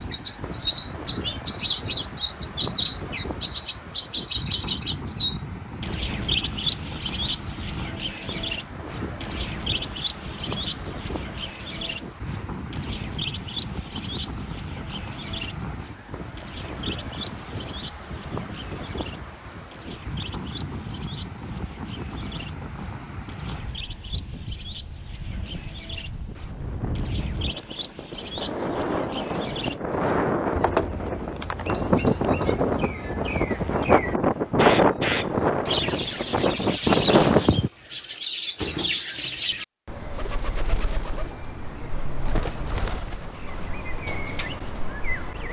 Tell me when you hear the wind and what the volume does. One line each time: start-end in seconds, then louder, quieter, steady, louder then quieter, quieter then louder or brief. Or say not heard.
0.0-37.7 louder.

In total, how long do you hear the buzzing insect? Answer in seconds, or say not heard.
not heard.